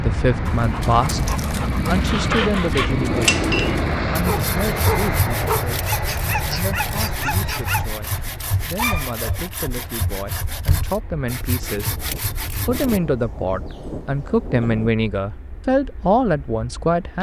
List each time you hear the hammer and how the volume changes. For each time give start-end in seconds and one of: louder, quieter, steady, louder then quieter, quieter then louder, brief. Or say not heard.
not heard.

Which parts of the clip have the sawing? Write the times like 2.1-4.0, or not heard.
2.0-13.0.